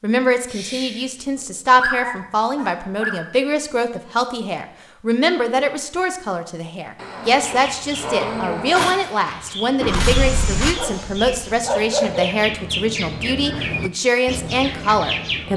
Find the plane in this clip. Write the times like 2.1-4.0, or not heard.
9.8-11.5.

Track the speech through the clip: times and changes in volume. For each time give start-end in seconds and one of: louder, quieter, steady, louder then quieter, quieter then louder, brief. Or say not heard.
0.0-15.5 steady.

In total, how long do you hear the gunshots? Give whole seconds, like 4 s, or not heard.
2 s.